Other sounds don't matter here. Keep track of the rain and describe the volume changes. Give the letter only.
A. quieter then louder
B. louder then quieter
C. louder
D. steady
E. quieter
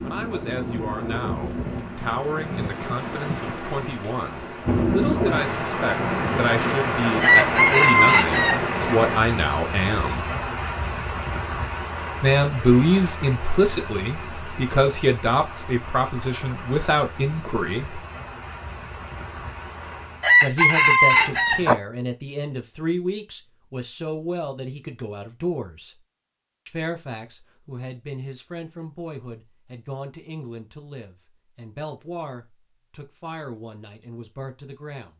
B.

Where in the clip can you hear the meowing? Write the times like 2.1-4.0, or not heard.
21.1-21.8.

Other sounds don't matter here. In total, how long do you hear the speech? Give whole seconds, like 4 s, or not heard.
30 s.